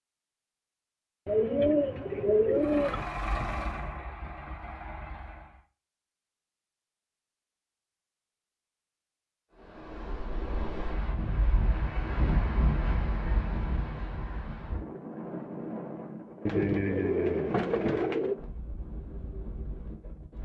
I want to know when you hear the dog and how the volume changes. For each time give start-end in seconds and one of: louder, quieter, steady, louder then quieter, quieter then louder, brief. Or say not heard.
not heard.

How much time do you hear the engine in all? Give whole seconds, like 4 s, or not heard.
3 s.